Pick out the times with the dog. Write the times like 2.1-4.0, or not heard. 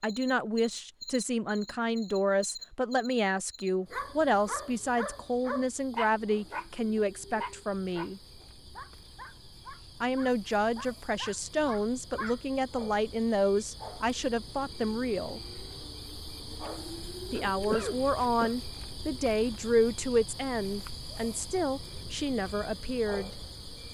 3.9-12.4.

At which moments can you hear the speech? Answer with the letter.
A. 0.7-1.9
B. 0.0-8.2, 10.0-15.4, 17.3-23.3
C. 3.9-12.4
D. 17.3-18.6
B.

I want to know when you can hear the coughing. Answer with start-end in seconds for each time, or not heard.
17.3-18.6.